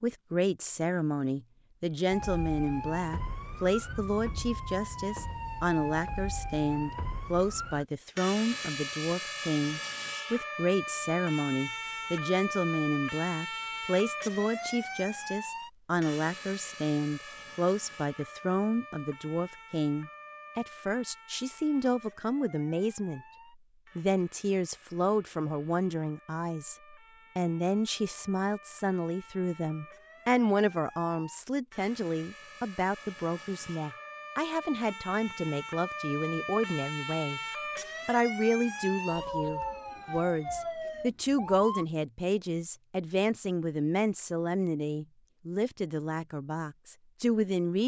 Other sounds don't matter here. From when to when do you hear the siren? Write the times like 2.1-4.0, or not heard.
2.1-41.9.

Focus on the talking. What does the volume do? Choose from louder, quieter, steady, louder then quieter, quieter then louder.
steady.